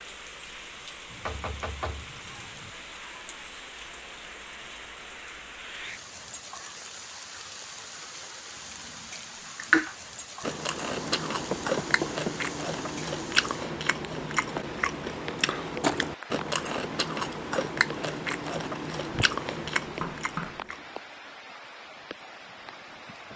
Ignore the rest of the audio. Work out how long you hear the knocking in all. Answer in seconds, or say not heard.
3 s.